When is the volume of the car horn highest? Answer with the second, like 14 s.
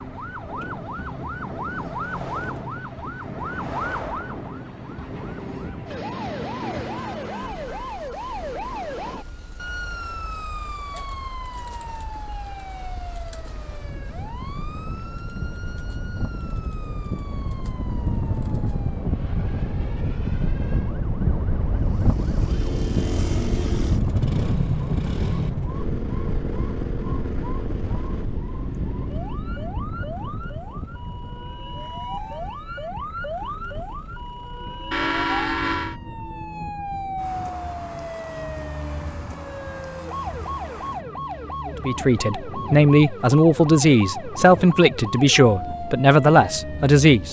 35 s.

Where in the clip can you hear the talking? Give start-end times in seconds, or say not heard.
41.9-47.2.